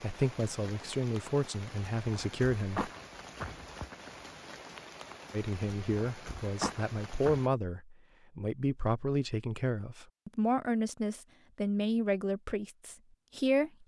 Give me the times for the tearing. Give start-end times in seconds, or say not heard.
not heard.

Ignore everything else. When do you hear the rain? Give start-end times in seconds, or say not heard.
0.0-7.5.